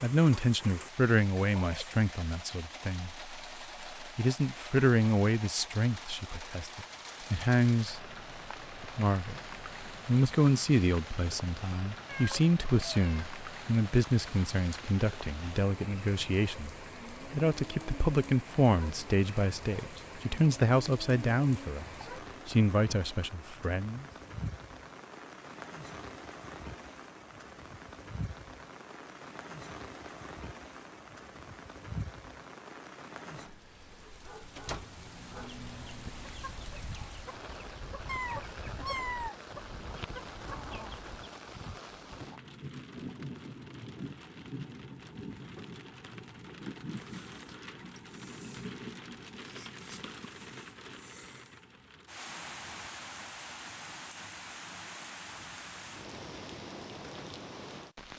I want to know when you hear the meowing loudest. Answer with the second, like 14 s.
39 s.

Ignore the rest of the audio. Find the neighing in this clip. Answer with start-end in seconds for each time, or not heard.
not heard.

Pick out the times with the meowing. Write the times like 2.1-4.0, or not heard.
12.1-13.2, 38.0-39.4.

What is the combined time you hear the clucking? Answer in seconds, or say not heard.
6 s.